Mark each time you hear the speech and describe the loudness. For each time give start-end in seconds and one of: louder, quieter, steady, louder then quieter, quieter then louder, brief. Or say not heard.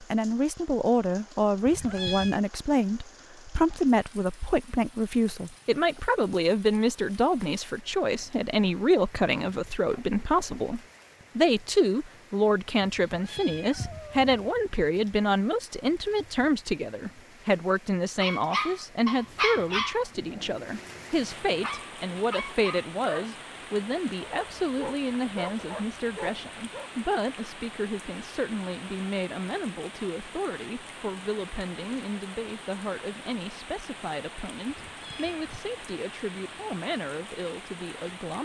0.0-38.4 quieter.